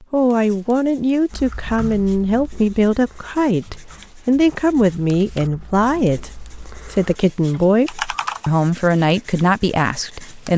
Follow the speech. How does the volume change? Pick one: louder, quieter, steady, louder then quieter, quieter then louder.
steady.